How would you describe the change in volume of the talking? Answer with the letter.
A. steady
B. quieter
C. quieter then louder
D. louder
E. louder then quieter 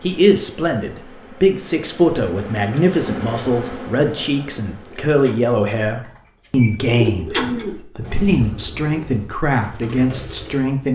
A.